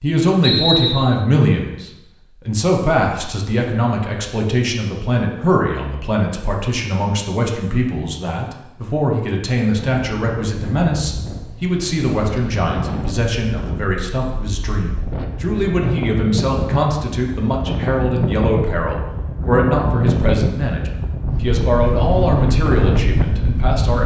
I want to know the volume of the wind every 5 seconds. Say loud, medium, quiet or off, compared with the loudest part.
off, off, medium, loud, loud.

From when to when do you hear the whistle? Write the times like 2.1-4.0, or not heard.
0.4-1.0.